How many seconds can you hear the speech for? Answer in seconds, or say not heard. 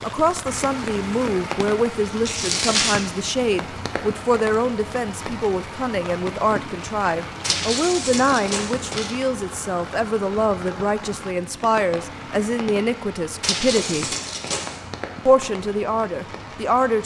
16 s.